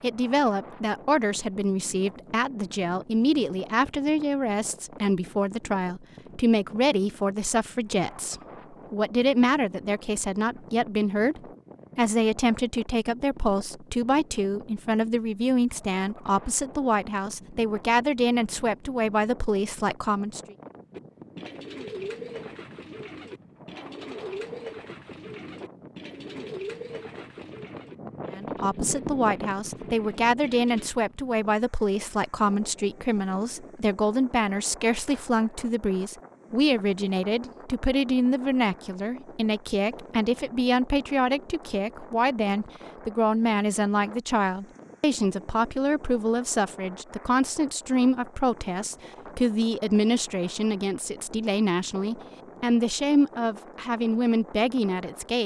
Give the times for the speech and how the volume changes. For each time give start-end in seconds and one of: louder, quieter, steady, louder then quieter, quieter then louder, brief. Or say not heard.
0.0-20.6 steady
28.3-55.4 steady.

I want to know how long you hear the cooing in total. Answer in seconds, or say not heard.
10 s.